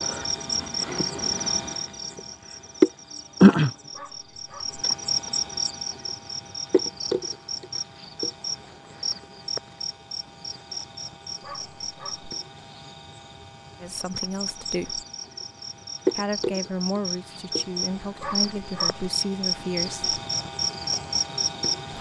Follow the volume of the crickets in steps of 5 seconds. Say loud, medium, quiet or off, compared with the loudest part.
loud, medium, quiet, medium, medium.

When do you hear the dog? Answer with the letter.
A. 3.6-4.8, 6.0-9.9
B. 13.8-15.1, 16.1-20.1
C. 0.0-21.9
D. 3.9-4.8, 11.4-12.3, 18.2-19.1
D.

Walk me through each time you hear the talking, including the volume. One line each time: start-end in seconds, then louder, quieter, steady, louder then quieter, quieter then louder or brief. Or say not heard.
13.8-15.1 brief
16.1-20.1 quieter then louder.